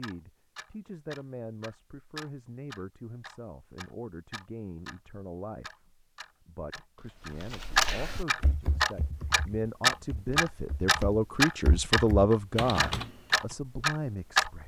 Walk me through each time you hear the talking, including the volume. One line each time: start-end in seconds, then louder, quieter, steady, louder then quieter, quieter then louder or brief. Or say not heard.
0.0-14.6 louder.